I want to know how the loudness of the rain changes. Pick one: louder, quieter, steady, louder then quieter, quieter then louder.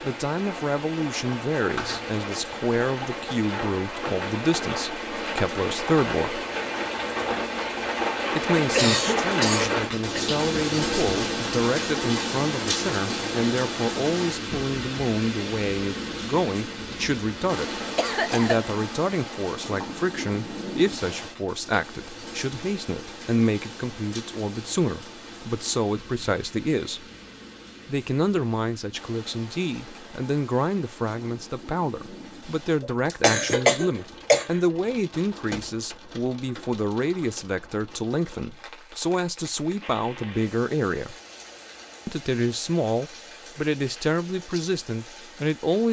quieter.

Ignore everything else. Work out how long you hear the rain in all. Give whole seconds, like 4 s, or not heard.
46 s.